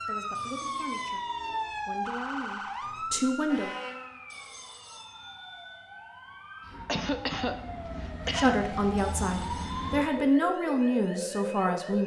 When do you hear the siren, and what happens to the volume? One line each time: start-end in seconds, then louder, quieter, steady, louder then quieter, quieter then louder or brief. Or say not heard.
0.0-12.0 quieter then louder.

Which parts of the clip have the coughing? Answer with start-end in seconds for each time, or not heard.
6.8-8.7.